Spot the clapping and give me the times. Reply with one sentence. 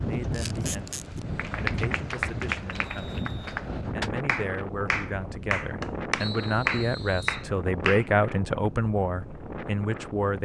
The clapping can be heard from 1.4 to 8.1 s.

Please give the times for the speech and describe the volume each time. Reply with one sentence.
You can hear the speech from 0.1 to 10.4 s, getting louder.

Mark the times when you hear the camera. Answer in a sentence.
You can hear the camera from 0.3 to 1.2 s.